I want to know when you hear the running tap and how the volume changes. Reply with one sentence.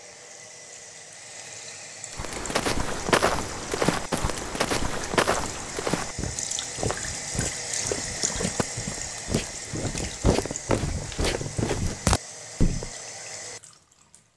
The running tap can be heard from 0.0 to 14.3 s, getting louder then quieter.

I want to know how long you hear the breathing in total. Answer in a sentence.
You can't hear the breathing here.